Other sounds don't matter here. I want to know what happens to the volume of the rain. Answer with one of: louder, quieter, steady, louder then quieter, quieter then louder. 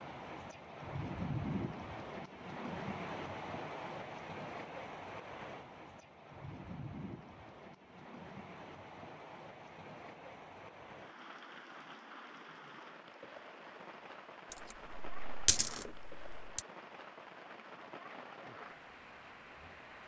quieter.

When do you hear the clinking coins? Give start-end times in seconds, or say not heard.
14.5-16.6.